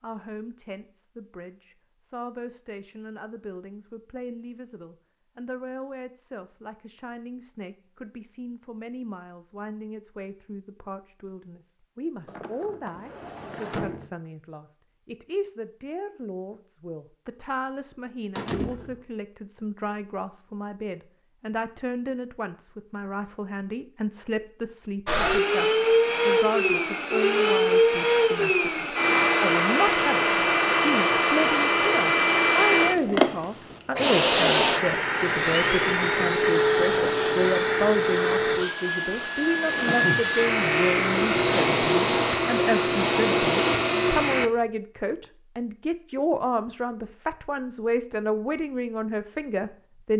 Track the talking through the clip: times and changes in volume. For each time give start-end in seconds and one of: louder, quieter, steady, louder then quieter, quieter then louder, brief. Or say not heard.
0.0-50.1 louder.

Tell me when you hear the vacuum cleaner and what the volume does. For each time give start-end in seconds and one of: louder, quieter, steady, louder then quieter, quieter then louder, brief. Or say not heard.
25.1-44.5 steady.